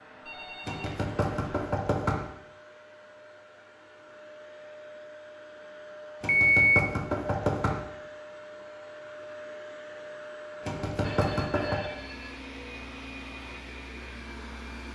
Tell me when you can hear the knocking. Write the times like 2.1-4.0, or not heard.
0.7-2.3, 6.2-7.8, 10.7-11.8.